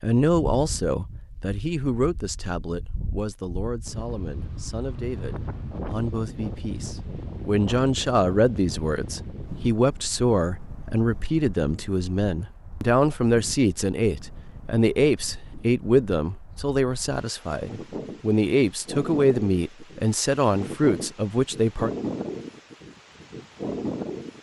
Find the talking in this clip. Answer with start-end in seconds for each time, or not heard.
0.0-21.9.